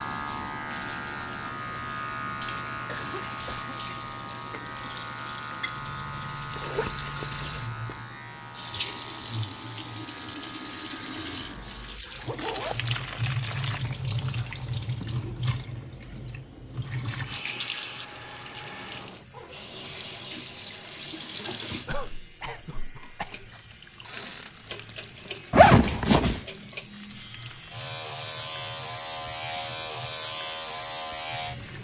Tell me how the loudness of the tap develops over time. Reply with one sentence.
The loudness of the tap goes up, then down.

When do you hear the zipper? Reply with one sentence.
You can hear the zipper from 6.5 to 8.0 s, from 12.2 to 13.2 s and from 25.5 to 26.4 s.